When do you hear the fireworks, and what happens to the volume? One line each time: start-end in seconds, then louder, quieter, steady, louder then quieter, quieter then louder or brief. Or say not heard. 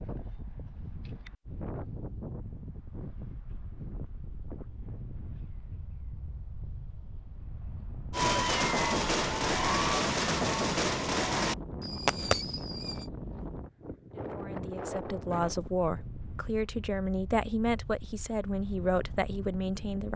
8.1-13.1 steady.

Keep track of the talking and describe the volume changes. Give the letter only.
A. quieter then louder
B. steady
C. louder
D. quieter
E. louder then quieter
B.